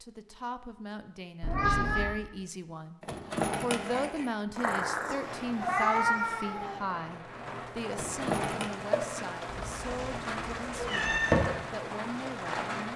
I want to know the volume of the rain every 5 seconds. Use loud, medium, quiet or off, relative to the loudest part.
off, loud, loud.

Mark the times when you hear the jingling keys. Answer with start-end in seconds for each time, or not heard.
3.0-4.3, 7.9-8.8.